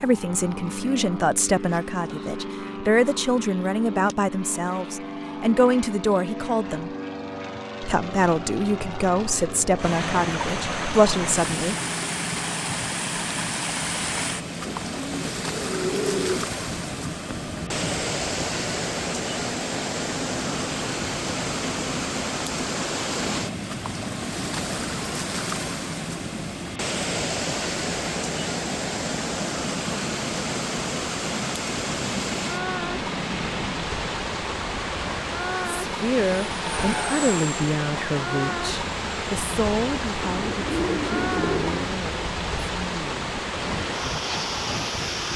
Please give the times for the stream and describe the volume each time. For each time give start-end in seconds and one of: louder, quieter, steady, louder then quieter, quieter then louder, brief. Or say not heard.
9.8-45.3 steady.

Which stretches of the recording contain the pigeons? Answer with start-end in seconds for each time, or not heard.
14.7-16.6, 40.5-42.0.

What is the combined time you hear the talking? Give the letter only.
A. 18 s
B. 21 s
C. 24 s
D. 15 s
A.